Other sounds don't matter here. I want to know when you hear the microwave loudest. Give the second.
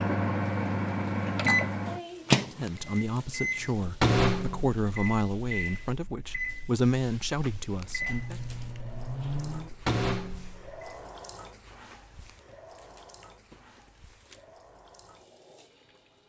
2 s.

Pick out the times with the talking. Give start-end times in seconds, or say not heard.
2.5-8.4.